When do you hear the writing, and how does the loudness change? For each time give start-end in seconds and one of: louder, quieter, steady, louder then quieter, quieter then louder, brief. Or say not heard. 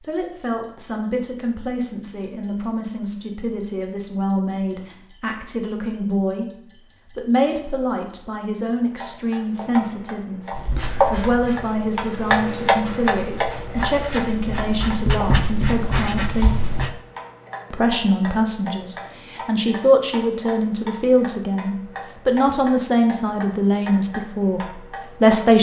10.5-16.9 louder.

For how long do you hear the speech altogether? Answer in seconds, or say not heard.
24 s.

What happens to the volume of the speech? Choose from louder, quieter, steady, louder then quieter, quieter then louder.
louder.